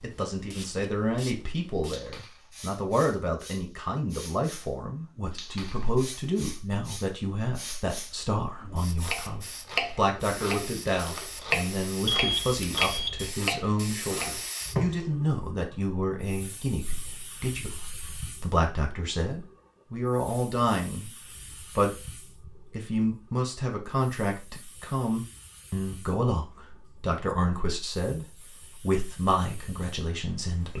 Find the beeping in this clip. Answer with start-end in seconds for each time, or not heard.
12.1-13.3.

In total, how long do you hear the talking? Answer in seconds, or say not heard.
31 s.